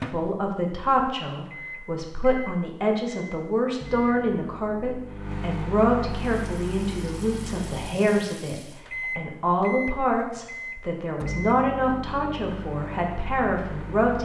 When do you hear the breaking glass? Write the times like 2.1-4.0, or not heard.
not heard.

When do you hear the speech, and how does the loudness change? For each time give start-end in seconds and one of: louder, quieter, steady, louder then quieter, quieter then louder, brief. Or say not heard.
0.0-14.2 steady.